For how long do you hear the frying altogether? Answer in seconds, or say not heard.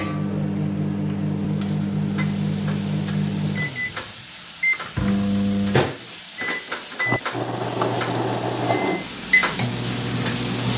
11 s.